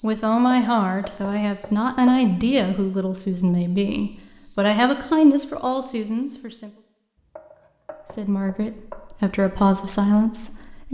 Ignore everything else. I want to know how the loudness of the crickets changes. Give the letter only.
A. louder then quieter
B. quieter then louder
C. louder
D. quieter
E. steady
B.